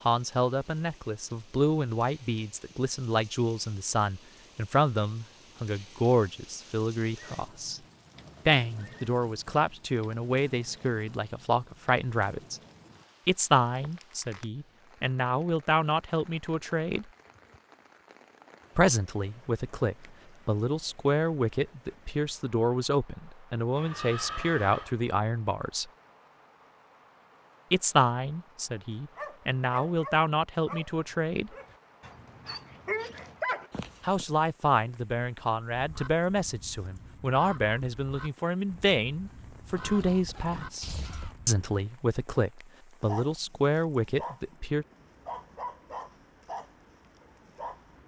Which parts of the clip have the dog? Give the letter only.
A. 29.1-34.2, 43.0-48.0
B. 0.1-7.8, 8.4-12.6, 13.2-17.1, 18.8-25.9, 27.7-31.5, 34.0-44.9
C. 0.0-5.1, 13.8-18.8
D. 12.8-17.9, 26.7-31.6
A.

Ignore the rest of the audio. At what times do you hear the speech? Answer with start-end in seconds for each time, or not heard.
0.1-7.8, 8.4-12.6, 13.2-17.1, 18.8-25.9, 27.7-31.5, 34.0-44.9.